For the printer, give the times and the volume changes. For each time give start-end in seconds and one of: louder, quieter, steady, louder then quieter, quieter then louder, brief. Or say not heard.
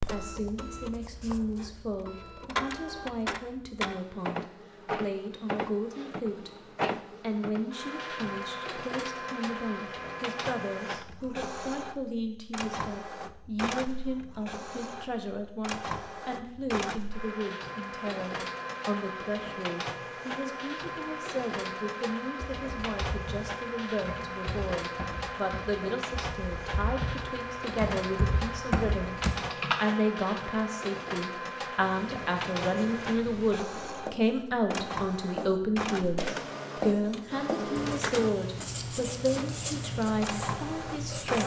0.0-41.4 steady.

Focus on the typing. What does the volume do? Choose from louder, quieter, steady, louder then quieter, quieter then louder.
louder.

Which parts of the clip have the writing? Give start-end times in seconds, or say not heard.
31.8-41.4.